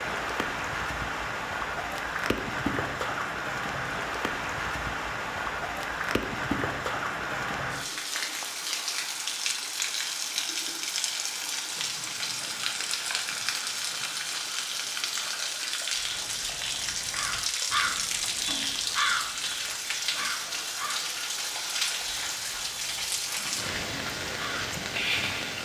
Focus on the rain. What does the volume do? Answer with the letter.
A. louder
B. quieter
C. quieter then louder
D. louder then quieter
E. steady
E.